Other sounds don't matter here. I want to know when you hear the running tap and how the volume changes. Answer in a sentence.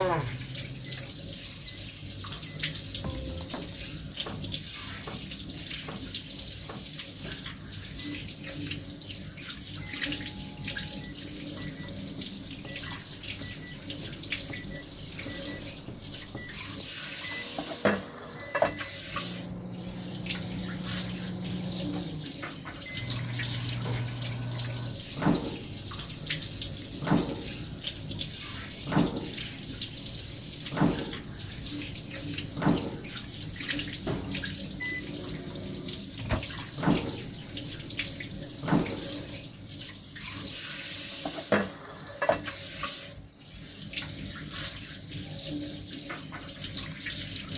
You can hear the running tap from 0.0 to 47.5 s, at a steady volume.